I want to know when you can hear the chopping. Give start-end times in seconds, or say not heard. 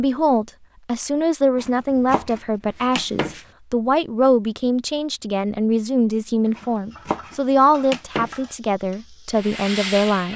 1.6-3.5, 6.5-8.4.